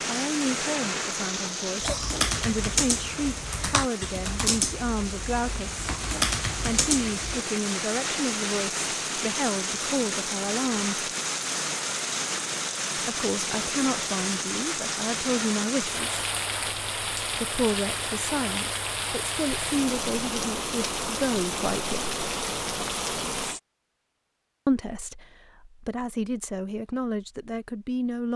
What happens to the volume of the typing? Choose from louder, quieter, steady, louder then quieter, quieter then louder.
quieter then louder.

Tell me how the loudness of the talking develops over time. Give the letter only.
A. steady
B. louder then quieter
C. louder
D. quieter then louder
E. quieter
A.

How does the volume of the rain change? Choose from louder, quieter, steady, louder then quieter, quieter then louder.
steady.